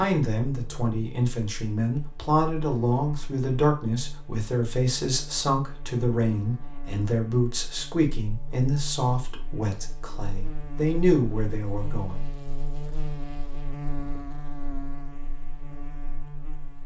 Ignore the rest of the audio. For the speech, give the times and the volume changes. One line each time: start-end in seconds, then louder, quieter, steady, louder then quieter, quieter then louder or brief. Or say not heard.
0.0-12.2 steady.